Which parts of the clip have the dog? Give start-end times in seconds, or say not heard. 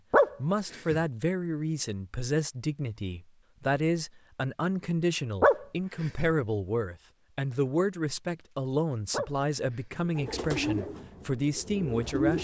0.1-1.0, 5.4-6.3, 9.1-10.0.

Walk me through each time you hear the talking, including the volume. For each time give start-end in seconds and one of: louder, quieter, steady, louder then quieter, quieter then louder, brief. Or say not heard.
0.4-12.3 steady.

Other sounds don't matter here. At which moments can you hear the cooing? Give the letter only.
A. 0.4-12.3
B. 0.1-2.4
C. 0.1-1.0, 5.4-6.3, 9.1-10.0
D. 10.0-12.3
D.